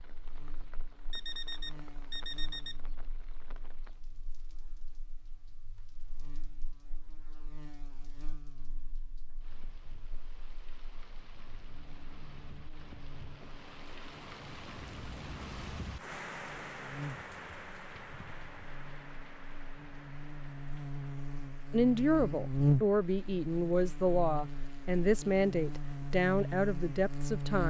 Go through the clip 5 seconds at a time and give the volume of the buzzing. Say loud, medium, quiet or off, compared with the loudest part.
quiet, quiet, quiet, quiet, loud, loud.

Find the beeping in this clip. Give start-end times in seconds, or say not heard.
1.1-2.8.